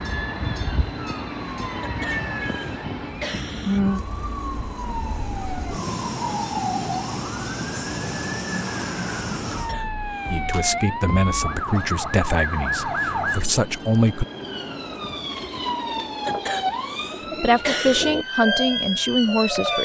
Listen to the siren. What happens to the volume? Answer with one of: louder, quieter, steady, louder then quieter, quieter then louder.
steady.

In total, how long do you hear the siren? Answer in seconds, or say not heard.
20 s.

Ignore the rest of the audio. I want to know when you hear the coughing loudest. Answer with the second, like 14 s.
18 s.